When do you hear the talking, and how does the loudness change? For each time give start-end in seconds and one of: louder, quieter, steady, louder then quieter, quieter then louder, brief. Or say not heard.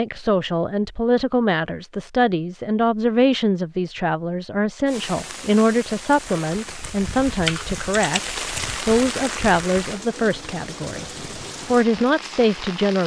0.0-11.1 steady
11.7-13.0 brief.